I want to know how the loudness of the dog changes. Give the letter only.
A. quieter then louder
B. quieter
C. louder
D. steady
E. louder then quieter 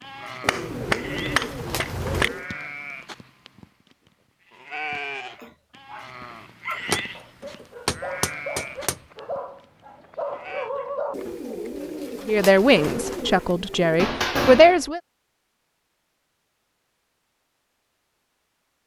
C.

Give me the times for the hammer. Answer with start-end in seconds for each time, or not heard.
0.5-2.3, 6.9-9.0, 13.9-14.9.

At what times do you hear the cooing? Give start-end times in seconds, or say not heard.
0.4-2.5, 11.1-14.1.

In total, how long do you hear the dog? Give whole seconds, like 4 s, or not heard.
6 s.